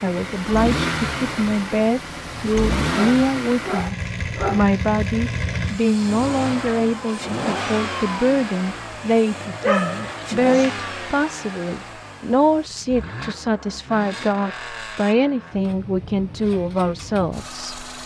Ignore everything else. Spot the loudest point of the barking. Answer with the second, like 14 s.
10 s.